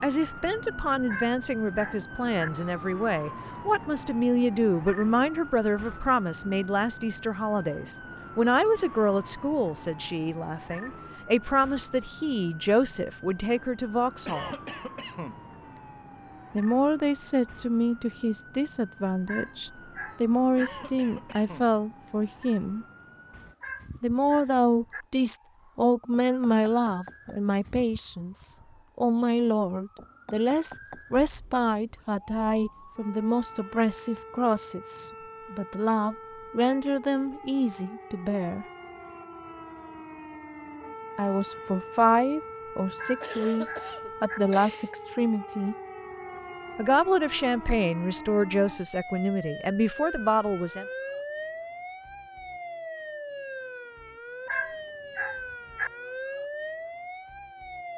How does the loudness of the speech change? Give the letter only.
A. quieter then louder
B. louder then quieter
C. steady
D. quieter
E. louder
C.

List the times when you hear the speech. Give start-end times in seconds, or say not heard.
0.0-14.5, 16.6-22.9, 24.0-38.6, 41.1-45.8, 46.8-50.9.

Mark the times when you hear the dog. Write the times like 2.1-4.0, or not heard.
1.1-2.5, 19.2-20.7, 23.6-25.1, 43.0-44.4, 54.5-55.9.